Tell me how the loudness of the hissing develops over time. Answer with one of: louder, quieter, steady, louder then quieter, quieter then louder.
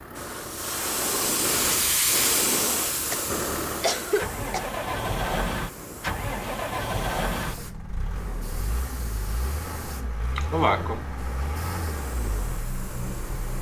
quieter.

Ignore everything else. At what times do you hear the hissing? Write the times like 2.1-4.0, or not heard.
0.0-13.5.